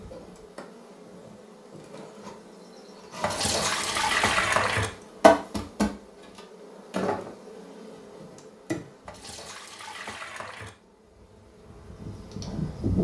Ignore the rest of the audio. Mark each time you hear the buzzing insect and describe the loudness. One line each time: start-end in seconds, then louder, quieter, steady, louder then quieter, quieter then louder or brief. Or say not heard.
0.0-12.9 louder then quieter.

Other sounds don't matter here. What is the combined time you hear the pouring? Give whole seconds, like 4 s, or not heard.
3 s.